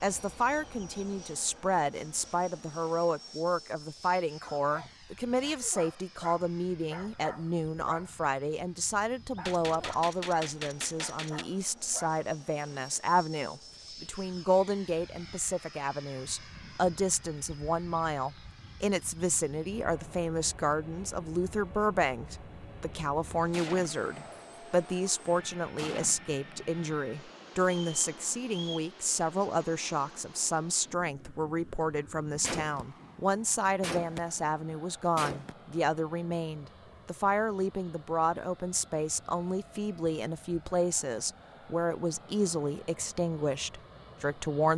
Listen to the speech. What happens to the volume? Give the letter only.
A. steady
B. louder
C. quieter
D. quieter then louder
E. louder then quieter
A.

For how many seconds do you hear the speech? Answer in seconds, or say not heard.
45 s.